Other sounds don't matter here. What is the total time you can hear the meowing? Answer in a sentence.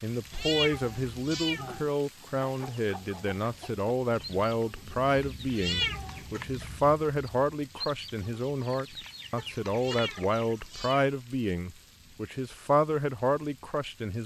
You can hear the meowing for 4 seconds altogether.